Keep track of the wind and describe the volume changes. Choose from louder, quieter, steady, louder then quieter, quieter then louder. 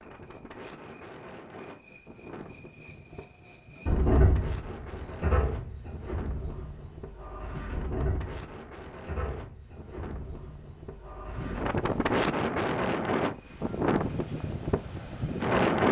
louder.